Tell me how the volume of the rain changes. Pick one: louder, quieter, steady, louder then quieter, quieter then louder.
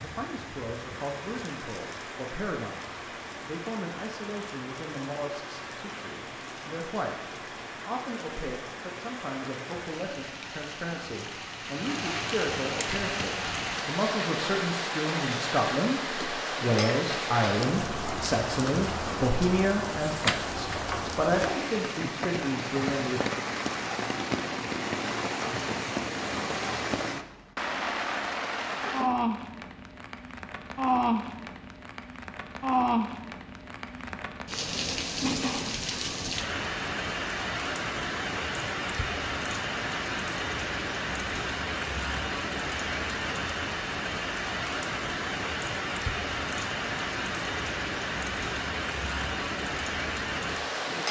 louder.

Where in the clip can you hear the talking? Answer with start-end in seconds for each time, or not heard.
0.0-7.2, 7.8-23.2.